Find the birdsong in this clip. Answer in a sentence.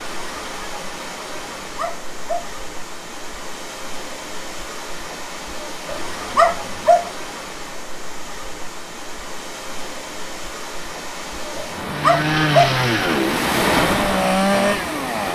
The birdsong can't be heard in this clip.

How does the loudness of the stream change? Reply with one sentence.
The loudness of the stream goes up.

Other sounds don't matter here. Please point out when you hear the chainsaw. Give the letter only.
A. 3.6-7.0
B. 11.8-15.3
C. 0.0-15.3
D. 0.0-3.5
B.